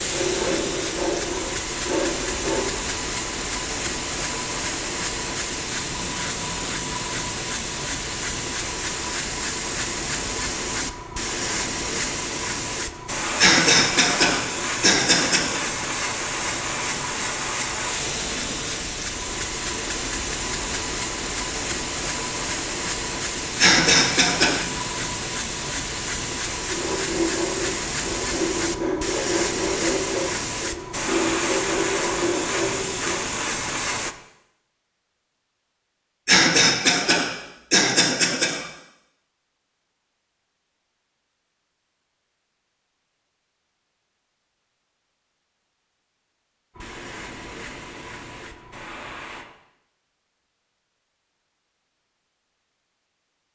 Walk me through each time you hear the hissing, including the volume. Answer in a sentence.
You can hear the hissing from 0.0 to 34.1 s, at a steady volume; and briefly from 46.8 to 49.5 s.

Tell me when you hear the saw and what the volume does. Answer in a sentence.
The saw can be heard briefly from 0.0 to 2.6 s; and from 26.7 to 33.2 s, at a steady volume.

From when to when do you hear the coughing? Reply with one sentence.
The coughing can be heard from 13.3 to 15.6 s, from 23.6 to 24.6 s and from 36.2 to 38.6 s.